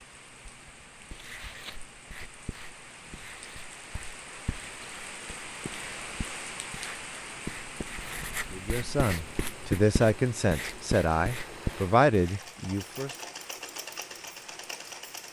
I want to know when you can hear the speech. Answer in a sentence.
You can hear the speech from 8.5 to 13.1 s.